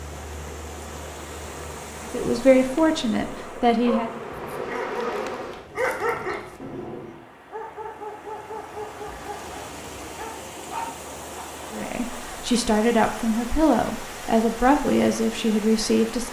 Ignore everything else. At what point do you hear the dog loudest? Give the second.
6 s.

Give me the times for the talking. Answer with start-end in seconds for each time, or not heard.
2.1-4.1, 11.7-16.2.